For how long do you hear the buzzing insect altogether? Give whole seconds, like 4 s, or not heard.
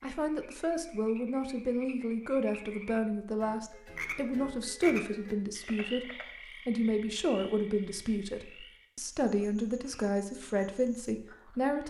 not heard.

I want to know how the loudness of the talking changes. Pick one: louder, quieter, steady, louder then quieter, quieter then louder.
steady.